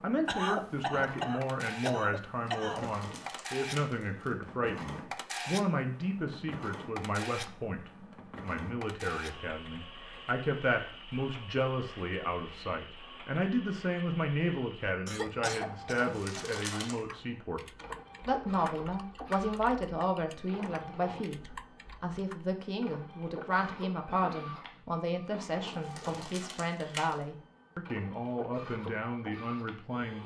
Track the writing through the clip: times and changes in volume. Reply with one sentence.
The writing can't be heard in this clip.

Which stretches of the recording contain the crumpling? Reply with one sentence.
The crumpling can be heard from 2.5 to 4.3 s, from 15.9 to 16.9 s and from 25.7 to 27.1 s.